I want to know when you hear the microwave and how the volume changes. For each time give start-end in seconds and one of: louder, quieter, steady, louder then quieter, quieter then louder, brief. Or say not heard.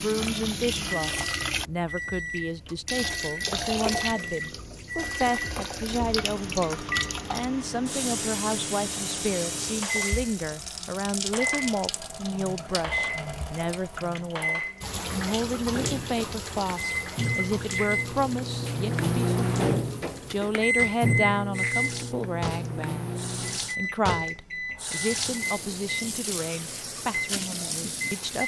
0.0-28.4 louder then quieter.